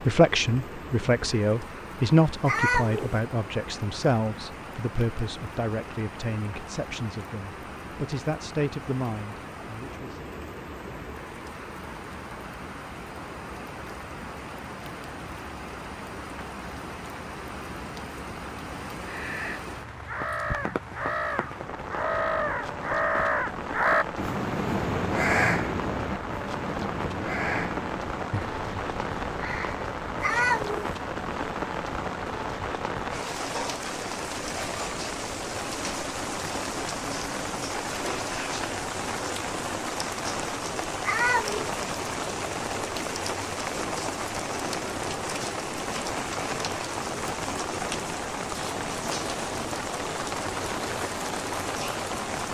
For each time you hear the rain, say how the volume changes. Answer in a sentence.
You can hear the rain from 0.0 to 52.4 s, getting louder.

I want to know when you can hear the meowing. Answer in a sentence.
You can hear the meowing from 2.5 to 3.2 s, from 30.2 to 30.9 s and from 41.0 to 41.8 s.